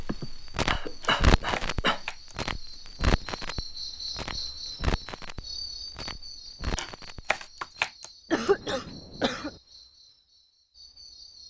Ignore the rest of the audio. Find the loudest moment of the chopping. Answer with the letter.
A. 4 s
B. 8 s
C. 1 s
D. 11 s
B.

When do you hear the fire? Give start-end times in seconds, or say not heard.
0.0-7.8.